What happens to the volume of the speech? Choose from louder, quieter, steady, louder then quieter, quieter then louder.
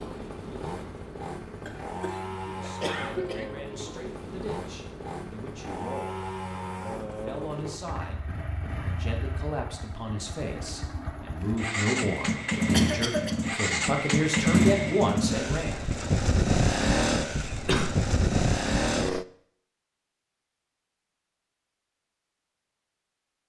louder.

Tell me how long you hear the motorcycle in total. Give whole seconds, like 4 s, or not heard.
19 s.